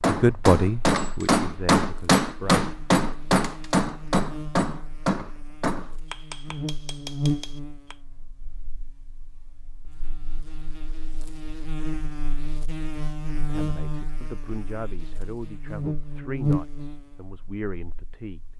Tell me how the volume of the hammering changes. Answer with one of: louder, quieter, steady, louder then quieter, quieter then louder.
quieter.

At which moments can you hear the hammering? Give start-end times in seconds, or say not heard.
0.0-8.0.